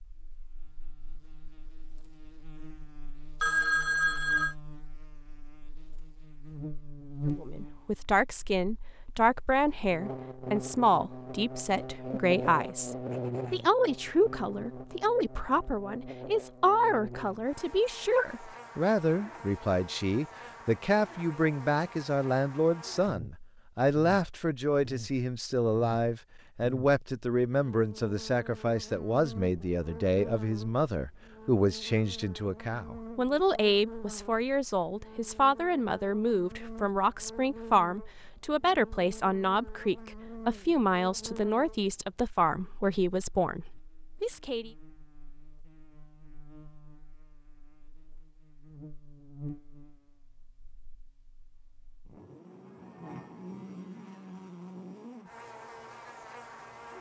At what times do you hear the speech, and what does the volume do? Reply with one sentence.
The speech can be heard from 7.2 to 44.7 s, at a steady volume.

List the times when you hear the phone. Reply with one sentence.
You can hear the phone from 3.4 to 4.5 s.